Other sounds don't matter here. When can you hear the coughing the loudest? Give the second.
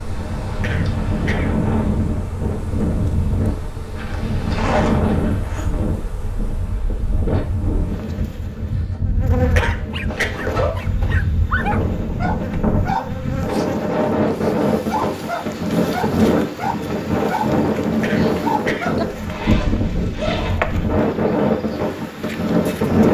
10 s.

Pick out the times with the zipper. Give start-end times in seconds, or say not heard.
3.5-5.7, 10.1-10.7, 19.1-20.6.